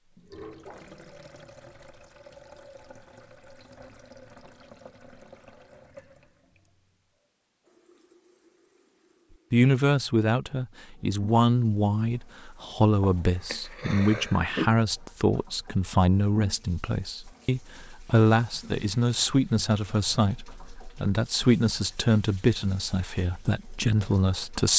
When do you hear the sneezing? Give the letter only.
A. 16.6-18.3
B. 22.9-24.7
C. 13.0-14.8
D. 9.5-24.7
C.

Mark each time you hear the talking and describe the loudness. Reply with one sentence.
You can hear the talking from 9.5 to 24.7 s, at a steady volume.